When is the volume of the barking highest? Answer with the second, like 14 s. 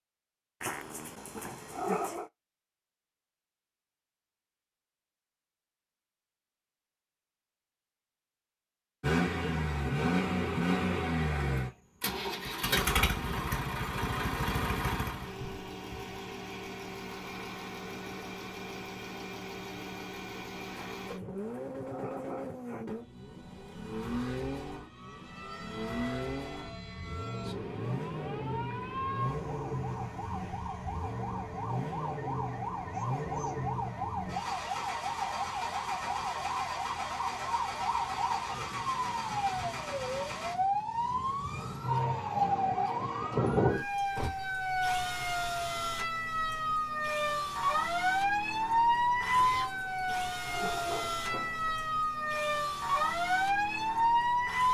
2 s.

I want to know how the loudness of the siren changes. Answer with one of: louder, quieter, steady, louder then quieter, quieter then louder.
louder.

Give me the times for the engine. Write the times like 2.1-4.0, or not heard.
9.0-40.5.